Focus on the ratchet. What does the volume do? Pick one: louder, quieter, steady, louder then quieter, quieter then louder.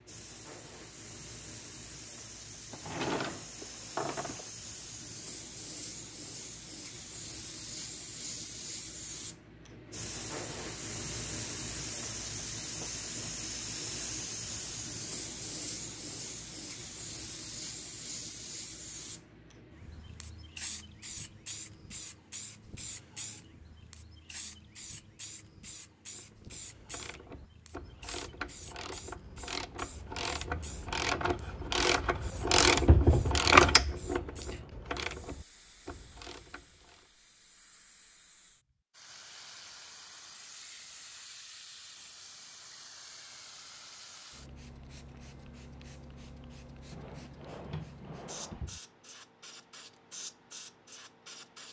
louder then quieter.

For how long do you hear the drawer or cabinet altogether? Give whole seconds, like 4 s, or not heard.
4 s.